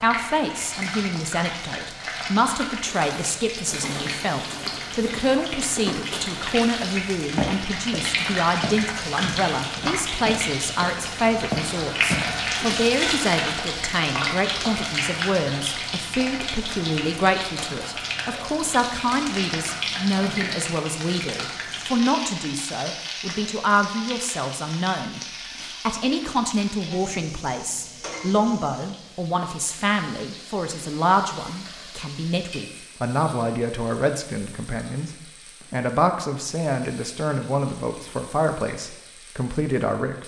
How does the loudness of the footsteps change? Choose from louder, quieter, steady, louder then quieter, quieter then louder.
louder.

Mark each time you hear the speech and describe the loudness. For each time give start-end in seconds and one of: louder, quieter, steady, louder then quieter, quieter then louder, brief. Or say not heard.
0.0-40.2 steady.